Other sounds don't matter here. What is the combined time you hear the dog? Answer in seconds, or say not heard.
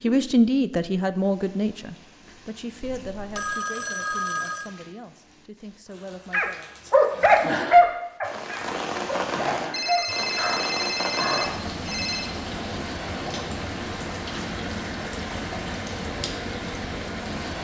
5 s.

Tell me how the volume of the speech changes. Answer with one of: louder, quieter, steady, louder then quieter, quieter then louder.
quieter.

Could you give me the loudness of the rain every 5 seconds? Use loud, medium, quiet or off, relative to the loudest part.
quiet, loud, loud, loud.